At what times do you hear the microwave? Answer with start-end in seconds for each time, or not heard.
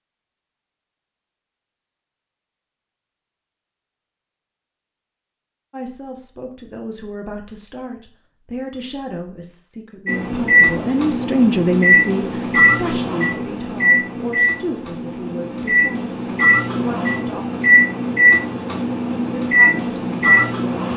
10.1-20.9.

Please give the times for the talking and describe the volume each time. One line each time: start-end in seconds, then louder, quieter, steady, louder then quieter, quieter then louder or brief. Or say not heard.
5.7-17.4 louder then quieter
19.4-20.6 brief.